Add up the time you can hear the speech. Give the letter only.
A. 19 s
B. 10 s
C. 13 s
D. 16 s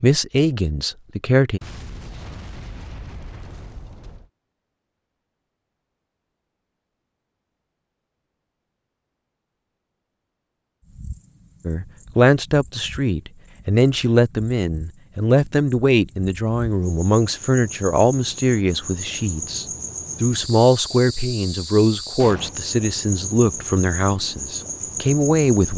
D.